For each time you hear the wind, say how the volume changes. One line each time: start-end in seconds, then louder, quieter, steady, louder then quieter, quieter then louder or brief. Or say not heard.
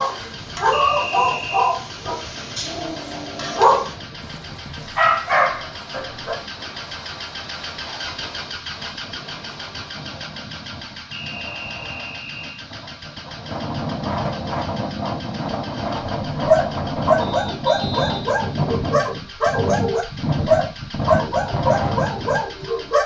0.0-22.9 louder.